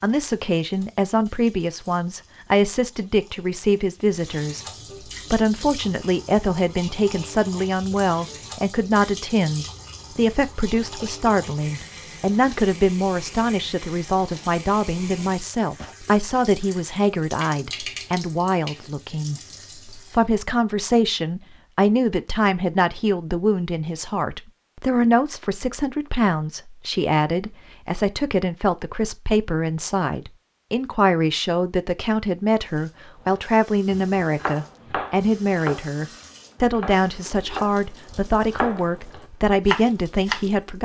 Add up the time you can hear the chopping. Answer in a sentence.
The chopping can be heard for 7 seconds in total.